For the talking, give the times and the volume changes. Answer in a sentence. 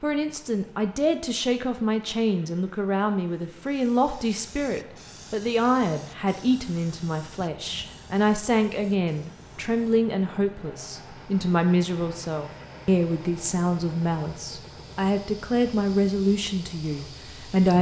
The talking can be heard from 0.0 to 17.7 s, at a steady volume.